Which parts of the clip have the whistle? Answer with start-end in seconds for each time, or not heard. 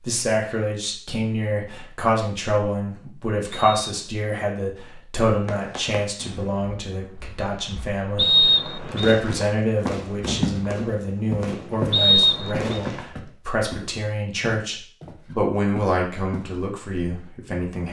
3.5-4.1, 8.2-9.2, 11.9-12.7.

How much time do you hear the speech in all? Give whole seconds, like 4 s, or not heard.
18 s.